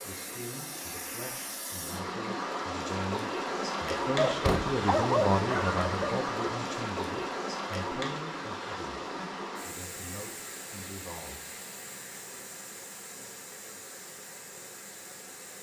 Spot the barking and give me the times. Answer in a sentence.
You can hear the barking from 4.2 to 6.2 s.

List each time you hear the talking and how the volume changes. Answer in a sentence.
You can hear the talking from 0.0 to 9.0 s, getting louder then quieter; and briefly from 9.7 to 11.5 s.